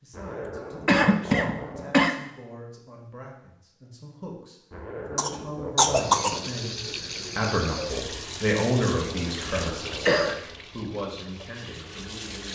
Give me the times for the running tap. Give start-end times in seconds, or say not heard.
5.8-12.4.